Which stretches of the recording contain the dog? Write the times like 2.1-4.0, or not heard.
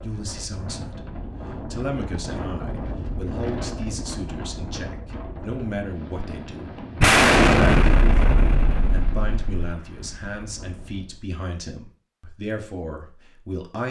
not heard.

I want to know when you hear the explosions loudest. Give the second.
7 s.